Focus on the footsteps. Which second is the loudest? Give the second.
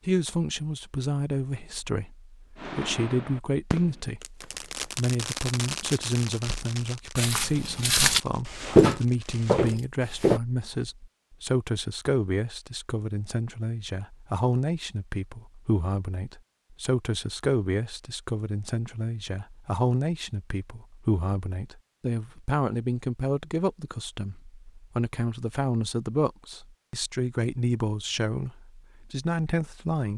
9 s.